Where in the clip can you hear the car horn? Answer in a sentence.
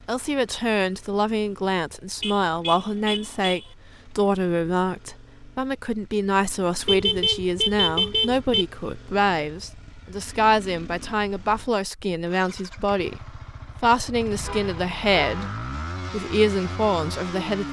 You can hear the car horn from 2.2 to 3.6 s, from 6.8 to 8.7 s and from 14.4 to 15.6 s.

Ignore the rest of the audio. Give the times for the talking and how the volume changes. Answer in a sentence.
You can hear the talking from 0.1 to 17.6 s, at a steady volume.